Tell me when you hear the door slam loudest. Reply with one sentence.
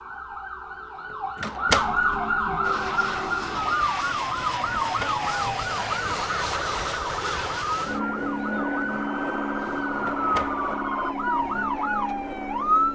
The volume of the door slam peaks at 2 seconds.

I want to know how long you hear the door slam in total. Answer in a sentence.
You can hear the door slam for 2 seconds altogether.